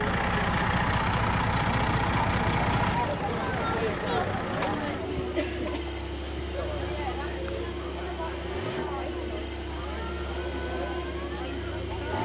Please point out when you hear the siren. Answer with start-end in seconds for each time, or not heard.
not heard.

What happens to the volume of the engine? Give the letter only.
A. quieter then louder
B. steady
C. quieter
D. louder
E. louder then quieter
C.